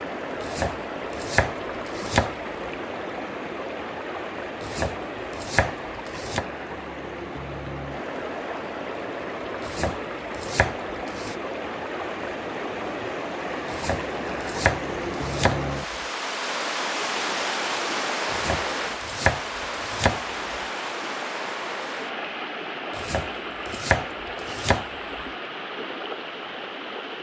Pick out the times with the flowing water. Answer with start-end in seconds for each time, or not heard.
0.0-27.1.